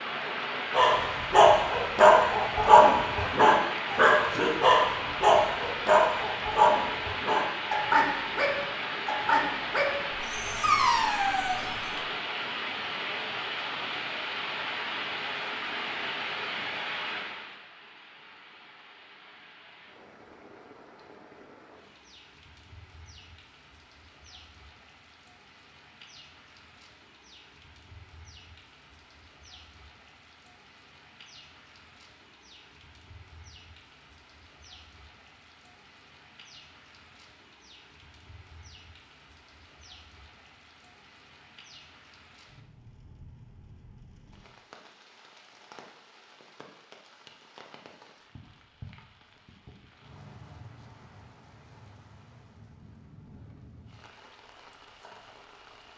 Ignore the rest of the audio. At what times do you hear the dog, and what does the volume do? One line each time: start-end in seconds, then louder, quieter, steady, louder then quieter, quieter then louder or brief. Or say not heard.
0.7-11.8 quieter.